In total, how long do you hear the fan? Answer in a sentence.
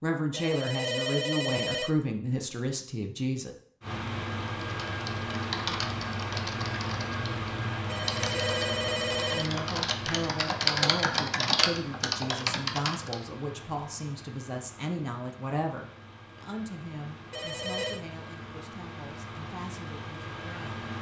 The fan can be heard for 17 seconds in total.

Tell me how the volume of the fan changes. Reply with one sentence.
The loudness of the fan goes down, then up.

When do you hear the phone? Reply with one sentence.
You can hear the phone from 0.3 to 1.9 s, from 7.8 to 9.5 s and from 17.3 to 18.0 s.